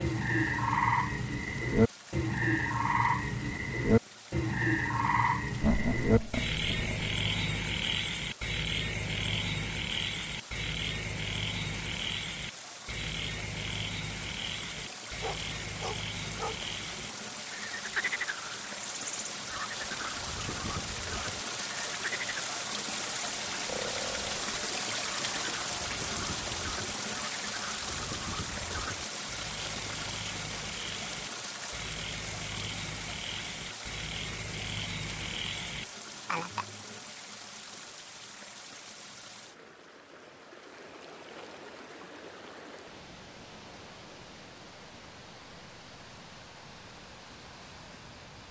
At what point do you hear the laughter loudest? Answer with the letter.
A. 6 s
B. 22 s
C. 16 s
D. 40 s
A.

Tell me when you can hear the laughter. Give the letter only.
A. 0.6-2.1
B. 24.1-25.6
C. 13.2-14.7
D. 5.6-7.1
D.